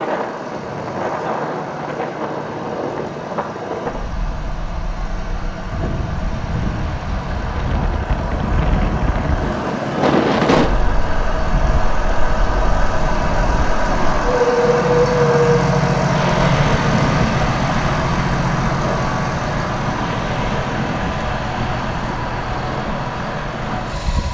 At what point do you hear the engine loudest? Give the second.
16 s.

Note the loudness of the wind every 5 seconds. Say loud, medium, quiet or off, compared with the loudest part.
medium, medium, loud, loud, medium.